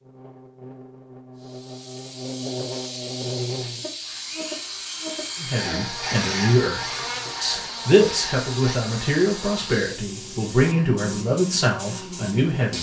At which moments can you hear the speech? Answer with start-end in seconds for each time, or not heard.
5.3-12.7.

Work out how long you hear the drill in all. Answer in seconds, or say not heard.
5 s.